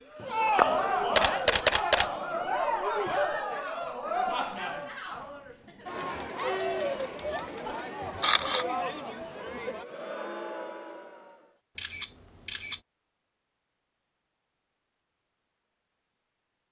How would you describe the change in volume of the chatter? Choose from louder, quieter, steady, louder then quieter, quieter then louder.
quieter.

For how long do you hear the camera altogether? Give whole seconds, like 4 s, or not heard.
3 s.